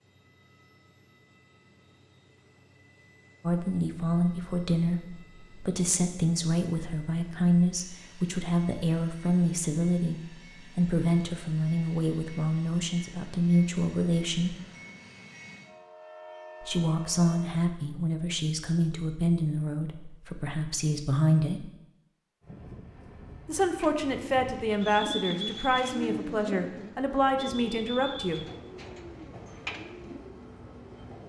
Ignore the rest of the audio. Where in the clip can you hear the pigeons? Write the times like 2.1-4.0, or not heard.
23.8-30.2.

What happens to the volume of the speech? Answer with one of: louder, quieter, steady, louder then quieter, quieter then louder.
steady.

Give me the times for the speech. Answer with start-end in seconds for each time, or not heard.
3.5-14.6, 16.6-21.7, 23.4-28.4.